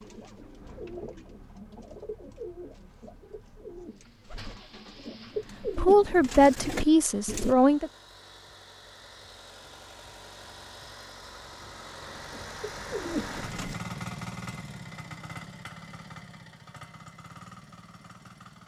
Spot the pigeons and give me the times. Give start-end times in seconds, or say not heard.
0.0-7.5, 12.2-13.8.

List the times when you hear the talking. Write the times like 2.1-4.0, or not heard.
5.7-7.9.